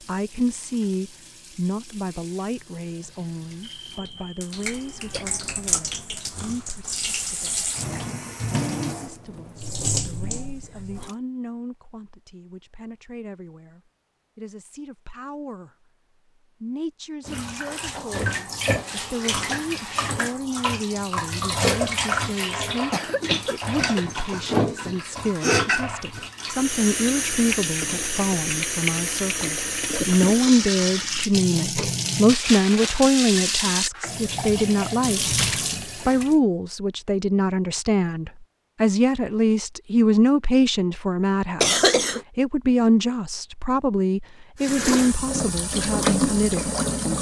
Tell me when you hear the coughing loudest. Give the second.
42 s.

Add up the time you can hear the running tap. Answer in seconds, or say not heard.
33 s.